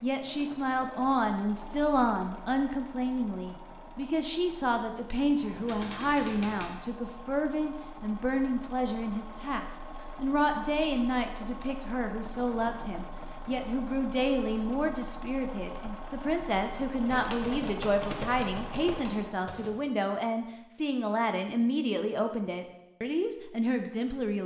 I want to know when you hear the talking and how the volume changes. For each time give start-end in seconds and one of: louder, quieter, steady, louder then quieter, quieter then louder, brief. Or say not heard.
0.0-24.4 steady.